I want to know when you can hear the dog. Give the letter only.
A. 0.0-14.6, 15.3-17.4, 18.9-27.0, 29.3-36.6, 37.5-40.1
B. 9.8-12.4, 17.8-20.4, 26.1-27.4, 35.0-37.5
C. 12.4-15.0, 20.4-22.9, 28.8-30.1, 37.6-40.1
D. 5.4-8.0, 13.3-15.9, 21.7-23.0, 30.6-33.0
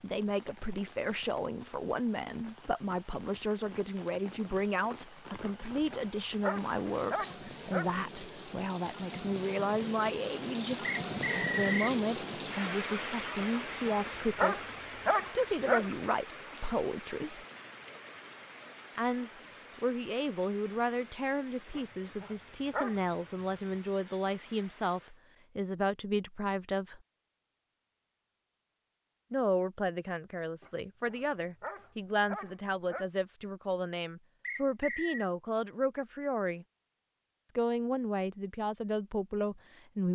D.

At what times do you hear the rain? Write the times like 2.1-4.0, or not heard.
0.0-25.2.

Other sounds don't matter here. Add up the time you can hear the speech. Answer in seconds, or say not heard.
35 s.